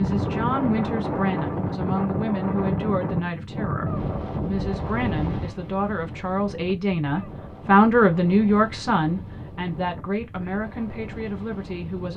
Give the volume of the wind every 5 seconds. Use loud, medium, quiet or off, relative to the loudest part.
loud, medium, quiet.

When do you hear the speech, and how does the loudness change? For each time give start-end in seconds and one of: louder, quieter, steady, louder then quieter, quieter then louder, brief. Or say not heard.
0.0-12.1 louder then quieter.